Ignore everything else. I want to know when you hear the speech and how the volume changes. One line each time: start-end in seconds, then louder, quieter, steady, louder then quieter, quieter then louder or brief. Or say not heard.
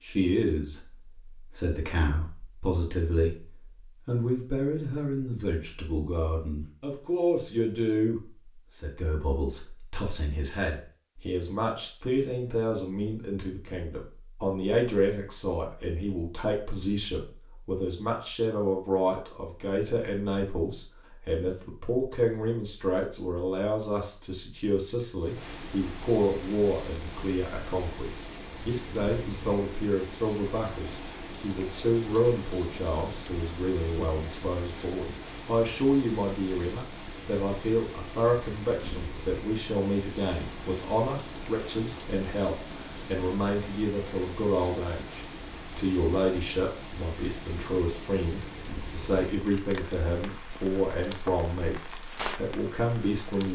0.0-53.5 steady.